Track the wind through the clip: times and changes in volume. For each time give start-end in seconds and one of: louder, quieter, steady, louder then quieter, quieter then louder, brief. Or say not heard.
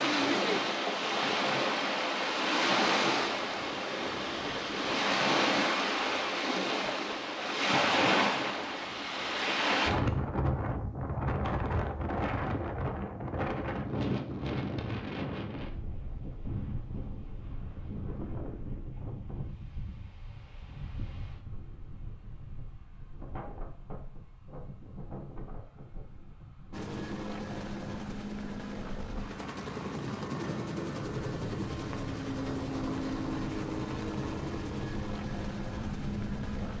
0.0-36.7 quieter then louder.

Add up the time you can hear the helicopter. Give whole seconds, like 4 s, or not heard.
10 s.